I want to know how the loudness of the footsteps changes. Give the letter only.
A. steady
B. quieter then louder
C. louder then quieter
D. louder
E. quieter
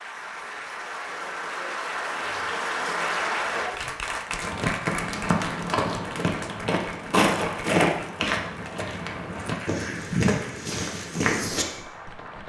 A.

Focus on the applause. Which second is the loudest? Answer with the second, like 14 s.
3 s.